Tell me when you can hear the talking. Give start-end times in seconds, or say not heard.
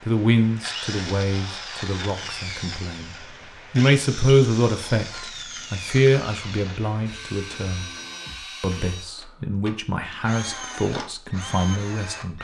0.0-7.8, 8.6-12.3.